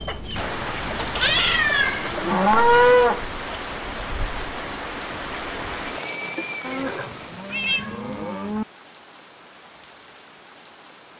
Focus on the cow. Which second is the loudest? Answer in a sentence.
The volume of the cow peaks at 3 seconds.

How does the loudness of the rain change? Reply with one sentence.
The volume of the rain goes down.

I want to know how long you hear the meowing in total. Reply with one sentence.
The meowing can be heard for 3 seconds in total.